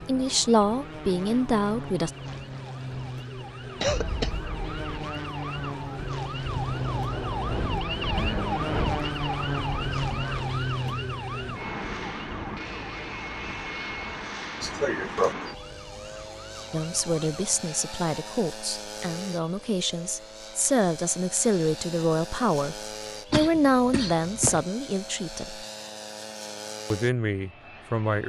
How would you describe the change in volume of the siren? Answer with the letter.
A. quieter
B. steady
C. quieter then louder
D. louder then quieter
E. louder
D.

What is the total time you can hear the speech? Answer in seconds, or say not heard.
12 s.